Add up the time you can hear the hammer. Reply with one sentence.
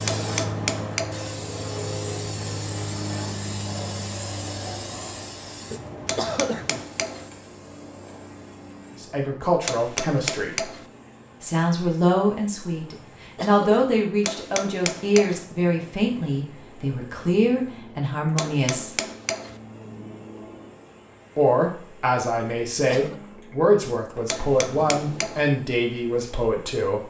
You can hear the hammer for 7 seconds altogether.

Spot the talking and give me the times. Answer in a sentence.
You can hear the talking from 8.9 to 10.7 s, from 11.4 to 18.9 s and from 21.4 to 27.0 s.